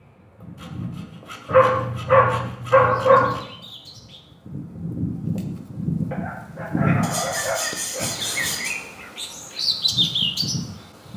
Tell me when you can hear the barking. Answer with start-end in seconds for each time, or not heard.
1.4-3.4, 6.1-8.1.